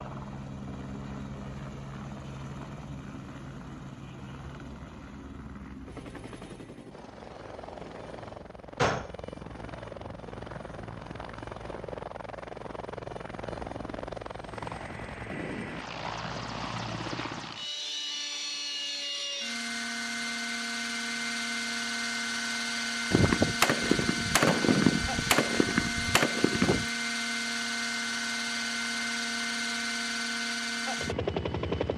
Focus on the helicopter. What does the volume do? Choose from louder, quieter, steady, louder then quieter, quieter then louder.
louder.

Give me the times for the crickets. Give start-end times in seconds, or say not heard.
not heard.